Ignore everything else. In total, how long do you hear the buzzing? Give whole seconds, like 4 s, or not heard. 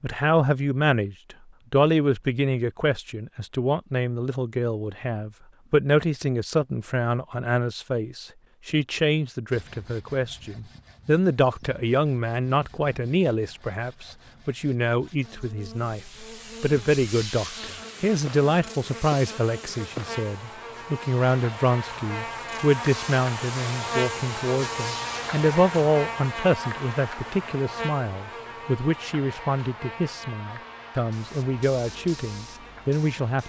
18 s.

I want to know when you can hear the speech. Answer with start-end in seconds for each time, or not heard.
0.0-16.0, 16.6-33.4.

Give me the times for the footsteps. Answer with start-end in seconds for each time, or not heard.
not heard.